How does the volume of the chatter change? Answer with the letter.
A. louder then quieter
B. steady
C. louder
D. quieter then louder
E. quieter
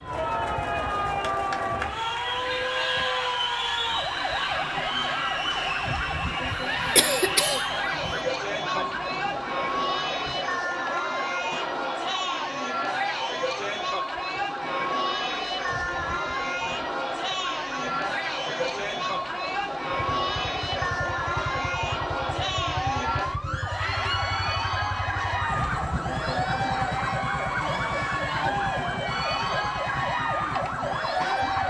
B.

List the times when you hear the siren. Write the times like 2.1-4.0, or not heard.
0.1-31.6.